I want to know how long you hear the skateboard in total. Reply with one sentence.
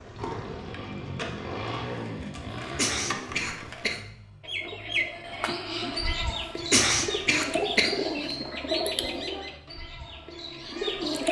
You can hear the skateboard for 4 seconds altogether.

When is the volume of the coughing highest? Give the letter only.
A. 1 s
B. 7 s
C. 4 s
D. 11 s
B.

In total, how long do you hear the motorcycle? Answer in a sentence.
The motorcycle can be heard for 11 seconds in total.